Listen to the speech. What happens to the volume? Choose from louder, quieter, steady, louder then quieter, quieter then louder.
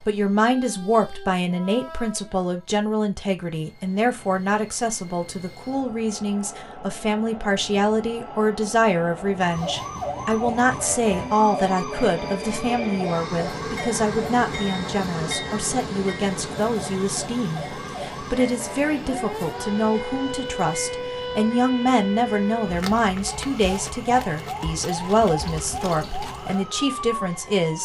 steady.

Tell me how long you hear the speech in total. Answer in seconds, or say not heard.
28 s.